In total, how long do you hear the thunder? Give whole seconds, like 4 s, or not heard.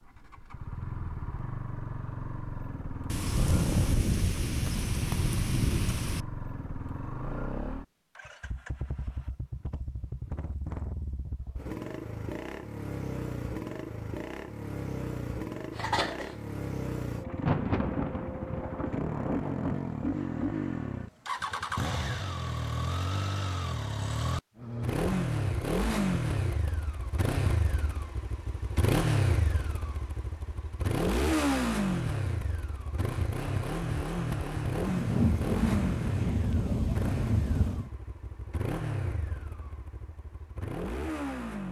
9 s.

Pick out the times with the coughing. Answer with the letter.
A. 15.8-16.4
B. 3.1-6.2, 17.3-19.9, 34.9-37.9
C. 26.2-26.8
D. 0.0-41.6
A.